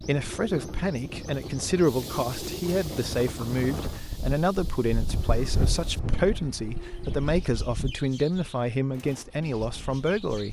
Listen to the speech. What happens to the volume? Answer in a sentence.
The volume of the speech stays about the same.